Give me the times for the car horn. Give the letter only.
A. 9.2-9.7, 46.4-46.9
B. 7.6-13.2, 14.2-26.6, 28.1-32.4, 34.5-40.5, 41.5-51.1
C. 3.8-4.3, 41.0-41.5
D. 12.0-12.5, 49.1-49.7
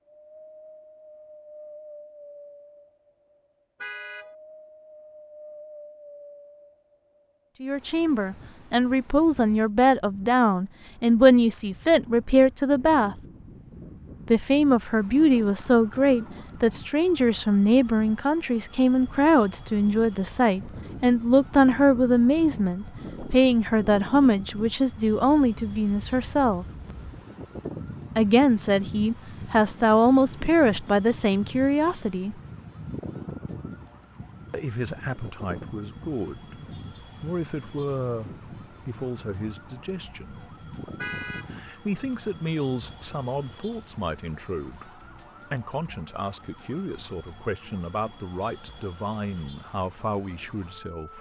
C.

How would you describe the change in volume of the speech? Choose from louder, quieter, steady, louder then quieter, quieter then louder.
quieter.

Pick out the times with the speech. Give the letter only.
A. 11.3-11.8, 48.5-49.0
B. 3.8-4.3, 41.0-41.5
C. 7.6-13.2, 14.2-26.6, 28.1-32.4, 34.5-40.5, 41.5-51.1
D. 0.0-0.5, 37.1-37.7
C.